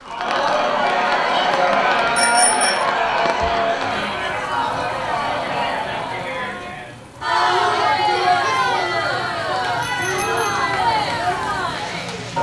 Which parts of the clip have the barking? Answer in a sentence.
You can't hear the barking here.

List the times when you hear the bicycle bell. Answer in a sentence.
The bicycle bell can be heard from 2.1 to 2.9 s and from 9.8 to 10.6 s.